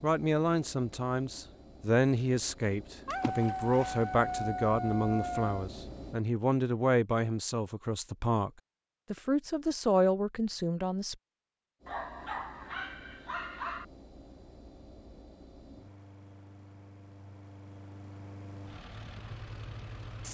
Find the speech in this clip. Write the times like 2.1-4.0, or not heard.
0.0-8.5, 9.1-11.2.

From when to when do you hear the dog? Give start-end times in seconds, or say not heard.
3.0-5.7, 11.8-13.8.